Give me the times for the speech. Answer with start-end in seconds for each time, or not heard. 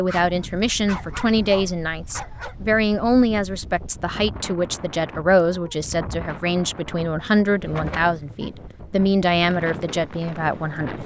0.0-11.0.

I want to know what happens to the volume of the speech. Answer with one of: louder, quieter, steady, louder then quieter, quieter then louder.
steady.